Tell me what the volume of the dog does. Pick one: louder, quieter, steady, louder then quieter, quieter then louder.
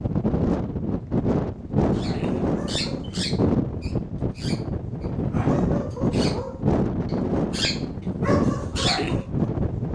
quieter then louder.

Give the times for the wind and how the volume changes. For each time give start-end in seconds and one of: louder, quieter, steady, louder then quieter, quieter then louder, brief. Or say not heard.
0.0-9.9 steady.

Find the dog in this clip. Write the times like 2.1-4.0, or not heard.
1.9-9.4.